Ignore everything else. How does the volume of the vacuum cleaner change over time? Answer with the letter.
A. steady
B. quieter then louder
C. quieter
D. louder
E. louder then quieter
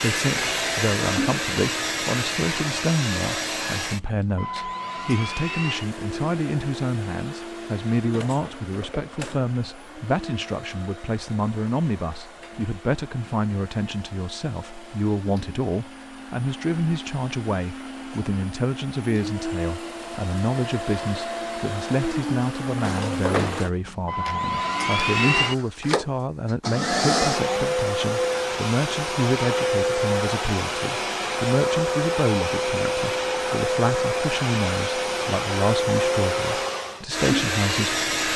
B.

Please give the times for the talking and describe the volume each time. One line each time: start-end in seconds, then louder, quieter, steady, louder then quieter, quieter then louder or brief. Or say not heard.
0.0-38.3 steady.